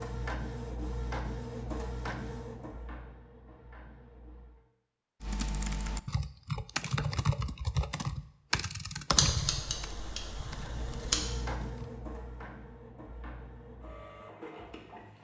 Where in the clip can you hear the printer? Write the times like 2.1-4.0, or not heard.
0.0-4.6, 10.5-15.1.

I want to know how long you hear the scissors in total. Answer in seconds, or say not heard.
2 s.